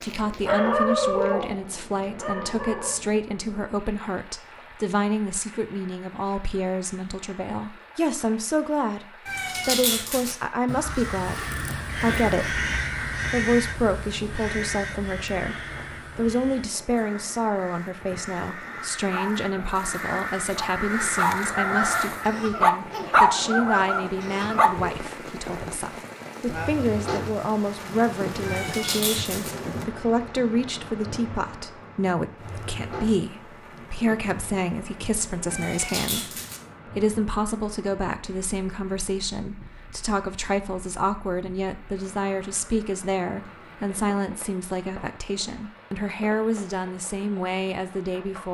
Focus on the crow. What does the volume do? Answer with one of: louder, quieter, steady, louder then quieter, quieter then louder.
quieter then louder.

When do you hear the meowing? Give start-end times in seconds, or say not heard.
9.2-10.3, 28.4-29.6, 35.5-36.6.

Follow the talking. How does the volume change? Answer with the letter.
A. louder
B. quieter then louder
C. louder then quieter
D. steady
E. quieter
D.